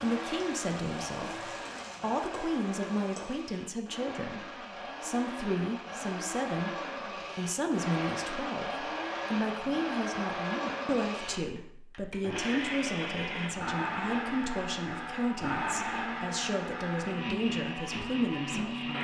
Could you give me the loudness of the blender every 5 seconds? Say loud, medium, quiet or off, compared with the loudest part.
medium, loud, loud, loud.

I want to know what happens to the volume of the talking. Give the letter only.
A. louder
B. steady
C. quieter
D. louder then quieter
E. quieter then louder
B.